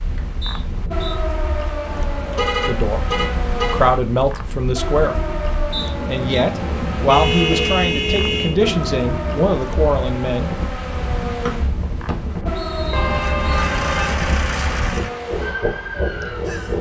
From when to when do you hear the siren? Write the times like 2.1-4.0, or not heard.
0.0-16.7.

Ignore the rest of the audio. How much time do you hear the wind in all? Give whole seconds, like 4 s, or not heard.
17 s.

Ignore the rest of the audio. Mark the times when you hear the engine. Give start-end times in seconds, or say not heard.
13.1-16.6.